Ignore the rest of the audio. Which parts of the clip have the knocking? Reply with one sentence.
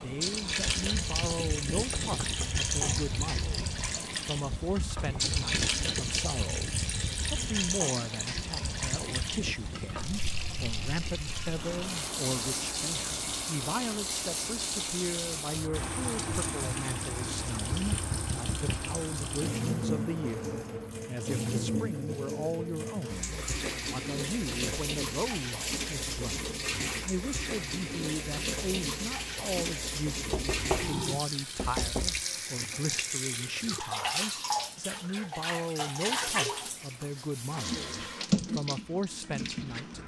The knocking can be heard from 1.9 to 2.5 s, from 17.7 to 18.9 s and from 30.3 to 32.2 s.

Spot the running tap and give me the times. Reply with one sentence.
You can hear the running tap from 0.0 to 40.0 s.